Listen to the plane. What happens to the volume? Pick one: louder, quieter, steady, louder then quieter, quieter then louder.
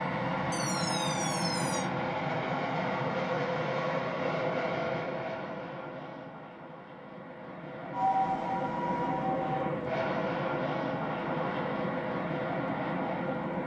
quieter then louder.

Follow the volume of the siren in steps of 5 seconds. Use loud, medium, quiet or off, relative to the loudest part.
medium, loud, off.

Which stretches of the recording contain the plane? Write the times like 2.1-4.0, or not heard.
0.0-13.6.